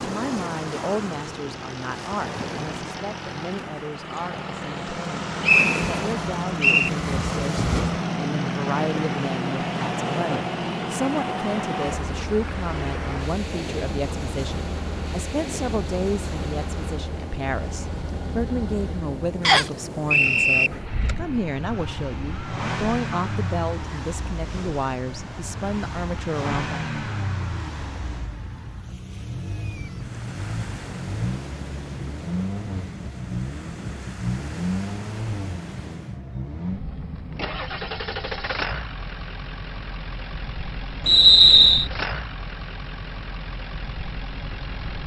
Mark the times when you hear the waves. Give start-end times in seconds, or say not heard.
0.0-36.2.